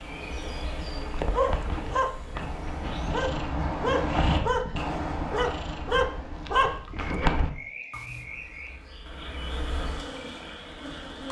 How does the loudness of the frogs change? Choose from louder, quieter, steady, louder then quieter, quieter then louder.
louder then quieter.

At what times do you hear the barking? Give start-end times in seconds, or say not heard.
0.8-8.2.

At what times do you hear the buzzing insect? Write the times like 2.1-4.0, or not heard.
0.0-3.1, 8.2-11.2.